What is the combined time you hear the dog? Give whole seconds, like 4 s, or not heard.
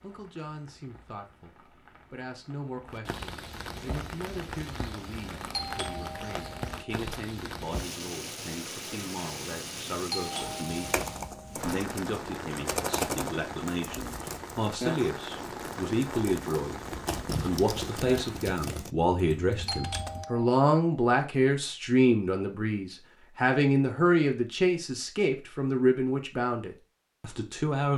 not heard.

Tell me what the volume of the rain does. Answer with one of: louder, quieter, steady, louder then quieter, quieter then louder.
louder.